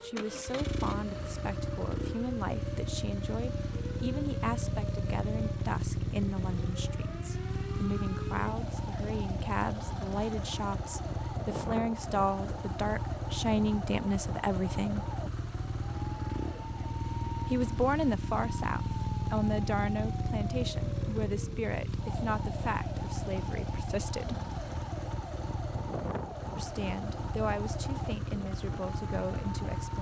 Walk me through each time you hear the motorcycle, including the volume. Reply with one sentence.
You can hear the motorcycle from 0.0 to 29.9 s, at a steady volume.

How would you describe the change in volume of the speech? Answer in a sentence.
The loudness of the speech goes up, then down.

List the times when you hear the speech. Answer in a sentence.
The speech can be heard from 0.0 to 15.1 s, from 17.4 to 24.4 s and from 26.6 to 29.9 s.